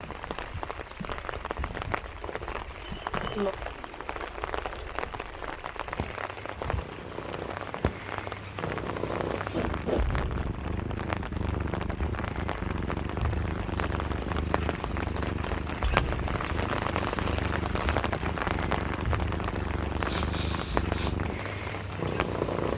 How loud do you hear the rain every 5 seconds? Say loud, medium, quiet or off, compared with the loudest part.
medium, medium, medium, loud, loud.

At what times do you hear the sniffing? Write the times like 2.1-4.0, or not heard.
2.8-3.5, 9.5-10.1, 20.1-21.1.